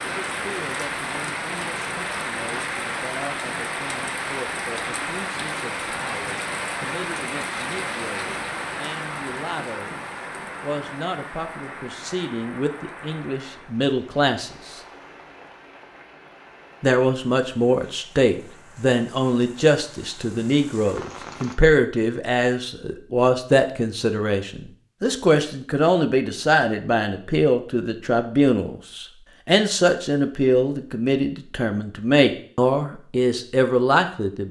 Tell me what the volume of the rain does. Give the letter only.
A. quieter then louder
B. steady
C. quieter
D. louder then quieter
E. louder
C.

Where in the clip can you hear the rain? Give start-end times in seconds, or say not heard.
0.0-21.6.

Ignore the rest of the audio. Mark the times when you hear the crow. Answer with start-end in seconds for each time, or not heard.
not heard.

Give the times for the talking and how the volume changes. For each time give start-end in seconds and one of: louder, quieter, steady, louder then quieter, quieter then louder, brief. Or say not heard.
0.0-14.8 louder
16.8-34.4 steady.